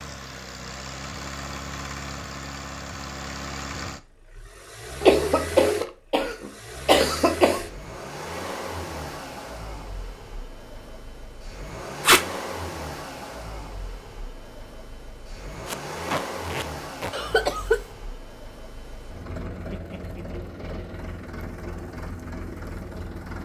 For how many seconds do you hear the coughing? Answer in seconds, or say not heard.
3 s.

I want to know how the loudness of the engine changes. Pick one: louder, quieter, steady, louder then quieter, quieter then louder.
steady.